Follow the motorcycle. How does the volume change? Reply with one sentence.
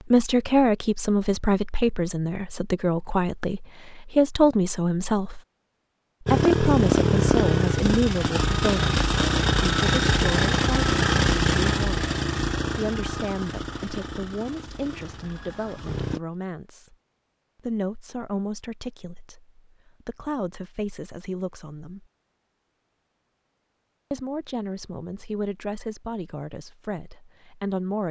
The volume of the motorcycle goes down.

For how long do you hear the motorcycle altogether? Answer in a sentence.
You can hear the motorcycle for 10 seconds altogether.